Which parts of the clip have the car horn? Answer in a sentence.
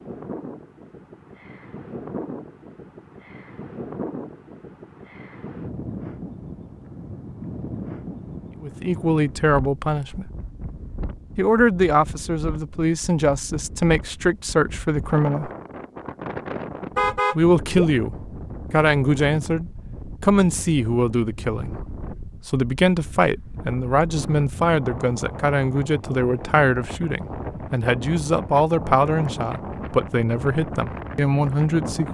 The car horn can be heard from 16.9 to 17.9 s.